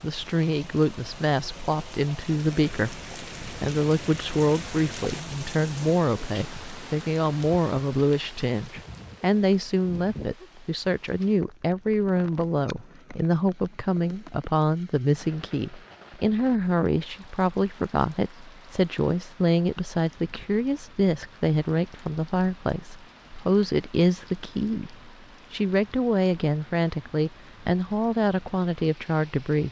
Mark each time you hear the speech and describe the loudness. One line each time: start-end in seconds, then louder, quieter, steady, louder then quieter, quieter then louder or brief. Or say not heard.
0.0-29.6 steady.